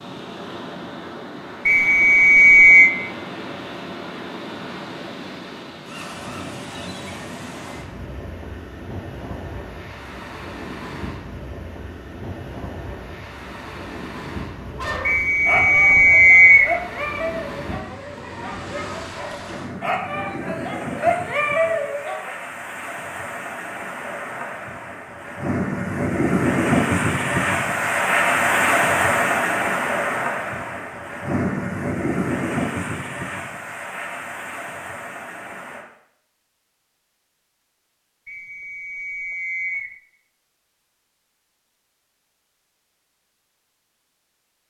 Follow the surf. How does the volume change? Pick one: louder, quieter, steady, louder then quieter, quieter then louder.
louder.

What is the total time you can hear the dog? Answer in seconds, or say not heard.
8 s.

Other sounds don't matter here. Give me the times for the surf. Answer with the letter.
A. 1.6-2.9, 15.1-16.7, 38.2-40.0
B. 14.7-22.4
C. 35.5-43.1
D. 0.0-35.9
D.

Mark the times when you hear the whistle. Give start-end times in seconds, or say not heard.
1.6-2.9, 15.1-16.7, 38.2-40.0.